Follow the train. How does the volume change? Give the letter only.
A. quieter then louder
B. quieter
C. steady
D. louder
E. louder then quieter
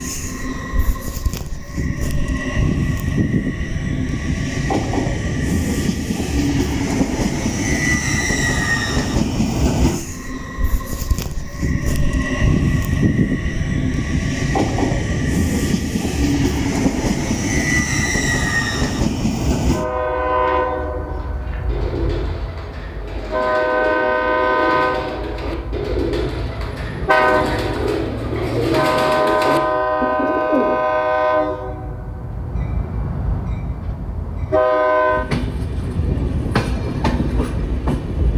C.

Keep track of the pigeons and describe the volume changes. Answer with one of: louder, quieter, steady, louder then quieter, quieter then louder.
louder.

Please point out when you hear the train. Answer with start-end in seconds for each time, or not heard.
0.0-38.3.